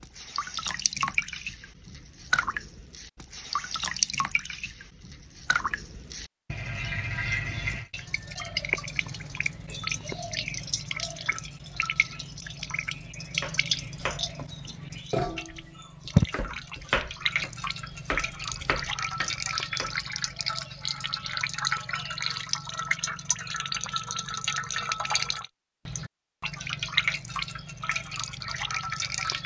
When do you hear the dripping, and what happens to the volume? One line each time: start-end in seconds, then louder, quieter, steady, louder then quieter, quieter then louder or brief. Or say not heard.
0.0-29.4 steady.